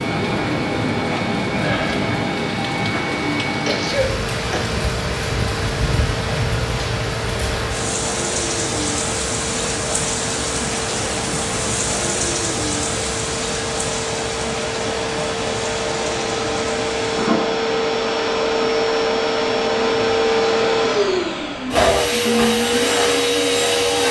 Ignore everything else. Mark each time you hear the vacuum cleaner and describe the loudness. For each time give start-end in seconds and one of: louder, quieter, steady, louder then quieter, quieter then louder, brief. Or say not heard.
0.0-24.0 louder.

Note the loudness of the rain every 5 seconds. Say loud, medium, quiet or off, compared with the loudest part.
loud, loud, loud, medium, off.